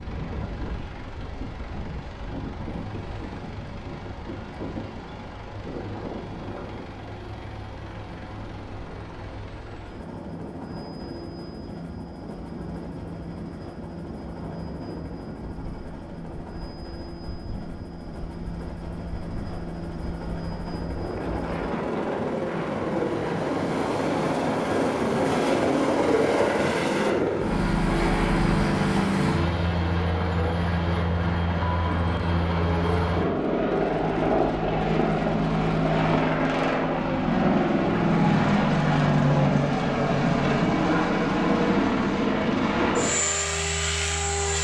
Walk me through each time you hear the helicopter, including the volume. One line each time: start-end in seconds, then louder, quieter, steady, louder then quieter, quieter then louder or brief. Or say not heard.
0.0-44.5 louder.